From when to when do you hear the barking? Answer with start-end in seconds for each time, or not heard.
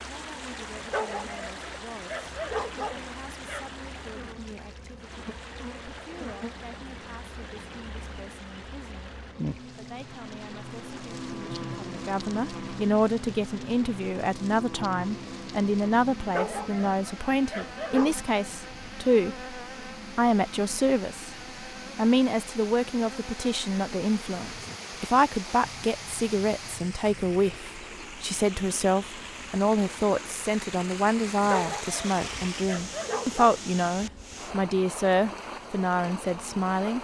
0.9-3.7, 16.3-18.1, 31.5-33.5.